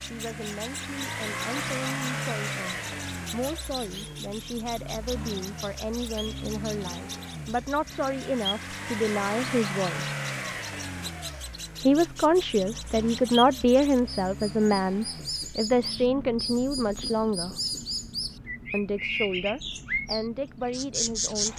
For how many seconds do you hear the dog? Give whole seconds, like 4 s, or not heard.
not heard.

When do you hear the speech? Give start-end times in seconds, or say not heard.
0.0-10.1, 11.8-17.6, 18.7-21.5.